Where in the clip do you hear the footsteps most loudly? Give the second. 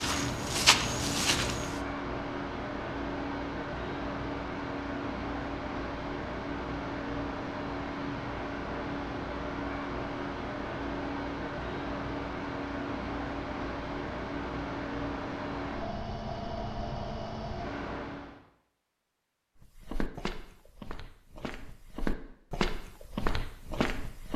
1 s.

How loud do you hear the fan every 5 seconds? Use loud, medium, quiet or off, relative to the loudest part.
loud, loud, loud, loud, off.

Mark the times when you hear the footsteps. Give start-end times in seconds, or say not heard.
0.0-1.8, 19.6-24.3.